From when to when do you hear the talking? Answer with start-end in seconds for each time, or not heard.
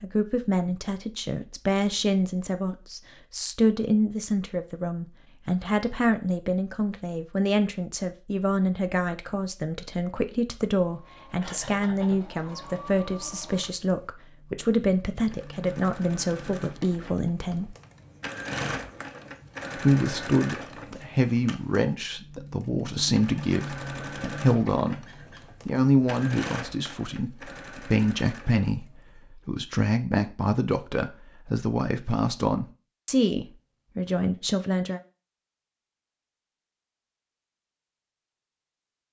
0.0-17.8, 19.8-25.1, 25.6-35.0.